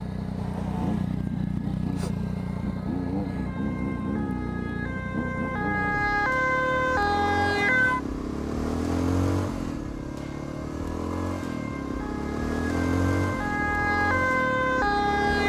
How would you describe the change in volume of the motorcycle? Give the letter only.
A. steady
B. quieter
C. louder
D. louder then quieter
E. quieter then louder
A.